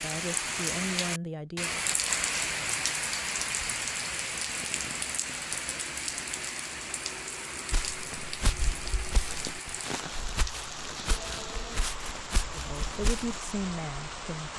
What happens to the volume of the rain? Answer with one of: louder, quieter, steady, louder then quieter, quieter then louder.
quieter.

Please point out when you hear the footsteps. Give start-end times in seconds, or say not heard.
7.7-13.4.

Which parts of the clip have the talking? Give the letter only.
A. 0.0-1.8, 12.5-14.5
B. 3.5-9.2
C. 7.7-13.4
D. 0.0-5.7
A.